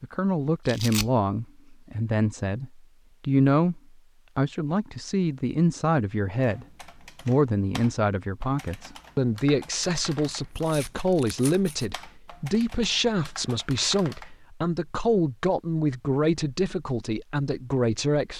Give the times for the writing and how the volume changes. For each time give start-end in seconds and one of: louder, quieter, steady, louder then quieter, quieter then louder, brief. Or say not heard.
not heard.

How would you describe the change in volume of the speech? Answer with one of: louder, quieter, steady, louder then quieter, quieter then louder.
steady.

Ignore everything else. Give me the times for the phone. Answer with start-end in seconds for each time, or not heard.
not heard.